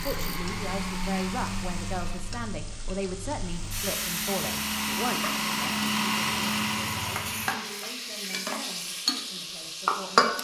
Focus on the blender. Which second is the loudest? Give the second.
6 s.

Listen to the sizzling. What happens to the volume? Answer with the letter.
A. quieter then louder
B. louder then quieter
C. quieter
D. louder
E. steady
D.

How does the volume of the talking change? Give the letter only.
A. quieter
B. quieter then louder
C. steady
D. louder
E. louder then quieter
A.